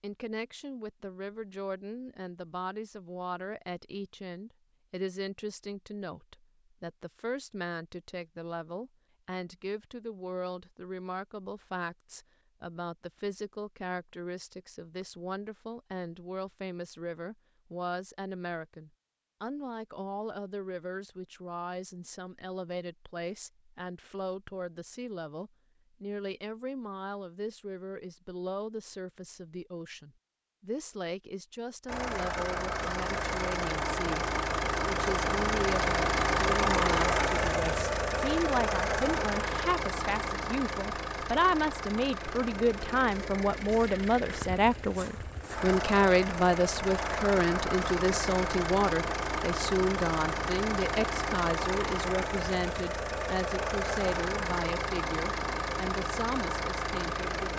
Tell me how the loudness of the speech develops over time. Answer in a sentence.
The volume of the speech goes up.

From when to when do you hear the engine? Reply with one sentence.
The engine can be heard from 31.9 to 57.5 s.